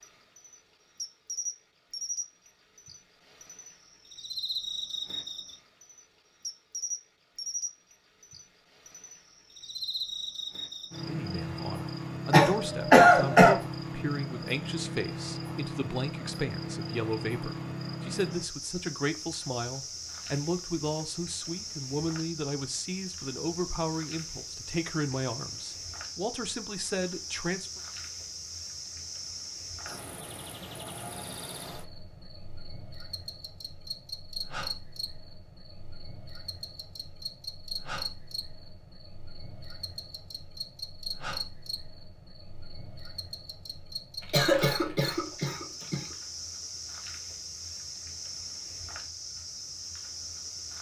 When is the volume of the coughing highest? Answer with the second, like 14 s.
13 s.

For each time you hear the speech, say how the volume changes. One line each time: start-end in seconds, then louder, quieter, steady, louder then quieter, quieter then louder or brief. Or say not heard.
11.1-27.8 steady.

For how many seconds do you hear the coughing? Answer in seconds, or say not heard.
3 s.